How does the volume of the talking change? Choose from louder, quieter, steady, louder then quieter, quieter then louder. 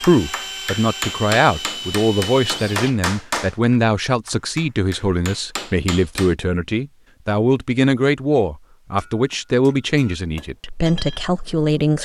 steady.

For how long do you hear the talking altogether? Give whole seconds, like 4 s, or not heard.
12 s.